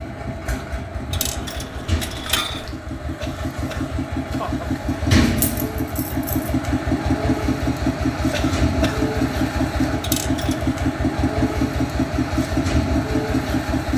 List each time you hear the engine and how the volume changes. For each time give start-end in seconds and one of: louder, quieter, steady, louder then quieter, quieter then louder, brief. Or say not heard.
0.0-13.9 louder.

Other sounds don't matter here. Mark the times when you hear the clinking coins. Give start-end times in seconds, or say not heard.
1.1-2.7, 5.3-6.6, 10.0-10.8.